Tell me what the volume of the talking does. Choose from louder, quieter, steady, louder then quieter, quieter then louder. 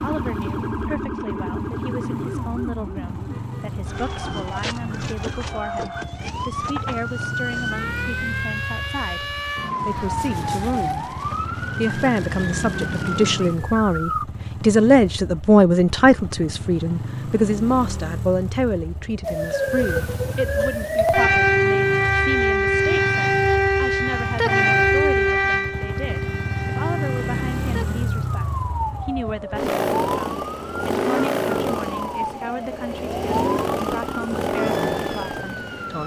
louder then quieter.